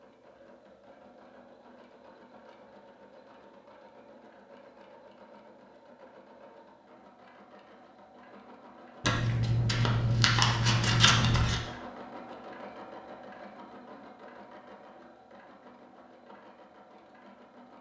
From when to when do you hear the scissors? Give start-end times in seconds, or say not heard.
9.0-11.6.